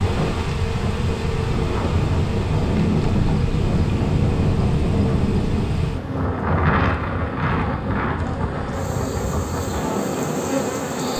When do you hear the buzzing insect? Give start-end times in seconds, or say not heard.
0.0-11.1.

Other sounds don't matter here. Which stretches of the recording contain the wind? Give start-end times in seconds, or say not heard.
0.0-11.1.